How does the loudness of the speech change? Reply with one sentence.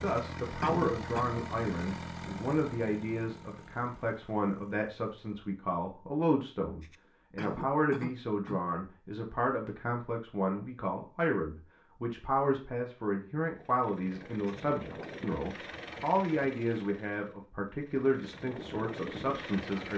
The loudness of the speech stays about the same.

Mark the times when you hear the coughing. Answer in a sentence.
You can hear the coughing from 0.1 to 1.3 s, from 6.8 to 8.7 s and from 14.4 to 15.1 s.